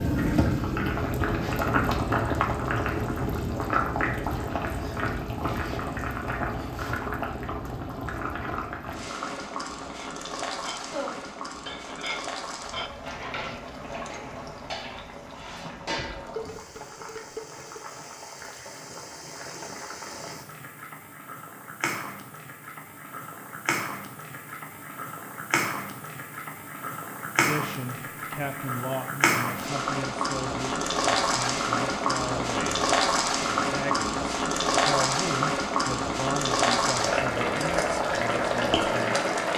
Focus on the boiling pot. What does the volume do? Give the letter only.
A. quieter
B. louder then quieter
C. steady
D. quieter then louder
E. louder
D.